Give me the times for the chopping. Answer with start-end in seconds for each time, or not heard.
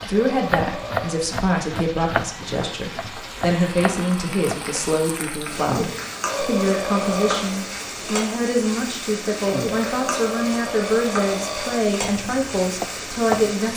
0.0-4.7, 12.0-13.5.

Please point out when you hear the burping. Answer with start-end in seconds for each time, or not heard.
0.1-1.2, 6.3-7.5, 9.4-11.8.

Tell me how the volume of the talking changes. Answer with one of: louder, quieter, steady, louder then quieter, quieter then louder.
steady.